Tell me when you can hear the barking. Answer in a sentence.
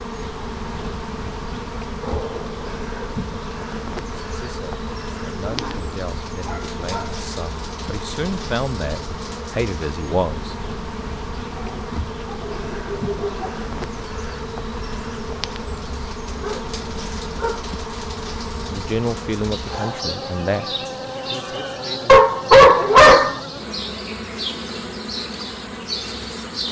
The barking can be heard from 2.0 to 3.4 s, from 5.5 to 7.2 s, from 11.5 to 13.6 s, from 16.4 to 17.6 s and from 22.1 to 23.4 s.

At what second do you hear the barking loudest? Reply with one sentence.
The volume of the barking peaks at 23 seconds.